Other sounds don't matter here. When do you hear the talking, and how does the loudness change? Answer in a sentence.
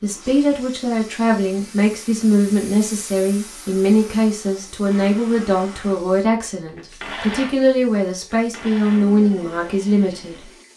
You can hear the talking from 0.0 to 10.5 s, at a steady volume.